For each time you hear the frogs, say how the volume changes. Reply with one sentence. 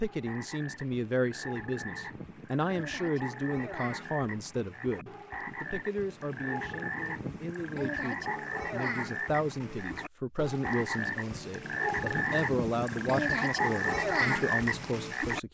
The frogs can be heard from 0.0 to 15.4 s, getting louder.